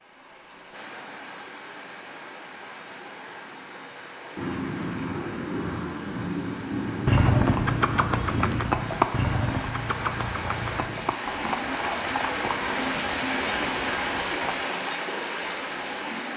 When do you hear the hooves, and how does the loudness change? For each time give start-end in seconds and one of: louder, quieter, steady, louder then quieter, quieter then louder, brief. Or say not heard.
7.0-14.7 quieter.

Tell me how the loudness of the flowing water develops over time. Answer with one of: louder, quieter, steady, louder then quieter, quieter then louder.
louder.